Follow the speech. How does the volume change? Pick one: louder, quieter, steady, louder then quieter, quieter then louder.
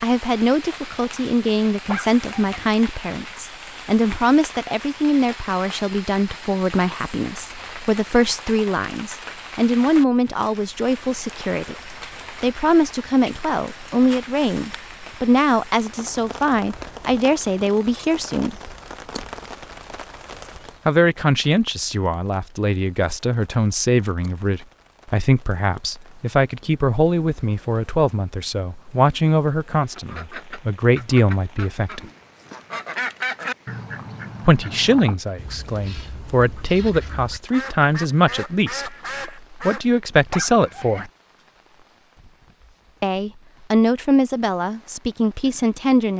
steady.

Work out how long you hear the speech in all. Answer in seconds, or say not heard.
39 s.